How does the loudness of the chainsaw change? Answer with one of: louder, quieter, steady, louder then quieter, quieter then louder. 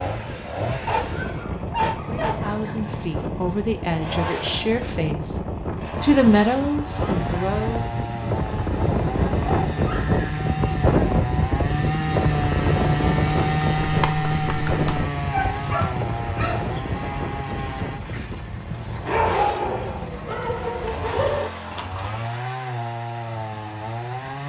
louder then quieter.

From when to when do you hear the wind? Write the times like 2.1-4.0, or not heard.
0.0-18.4.